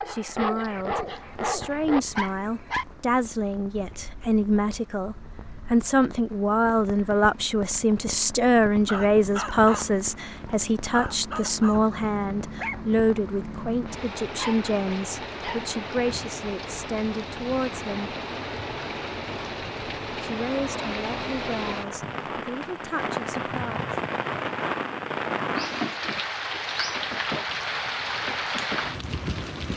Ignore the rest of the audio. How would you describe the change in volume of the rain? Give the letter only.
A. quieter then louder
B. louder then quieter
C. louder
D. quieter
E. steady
C.